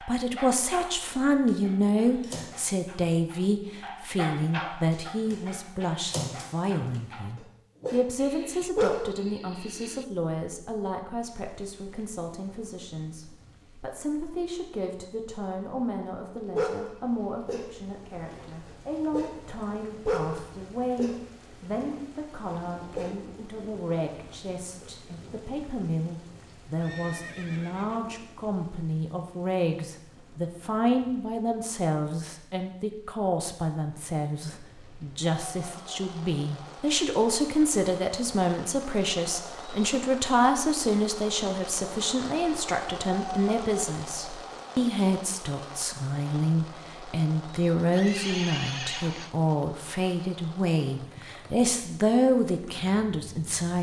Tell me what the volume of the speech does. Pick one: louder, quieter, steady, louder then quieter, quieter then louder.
quieter then louder.